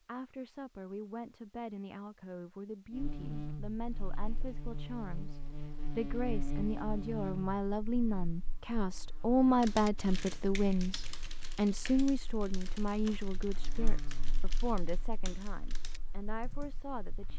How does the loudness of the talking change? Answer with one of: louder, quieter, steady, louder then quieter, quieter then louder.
louder then quieter.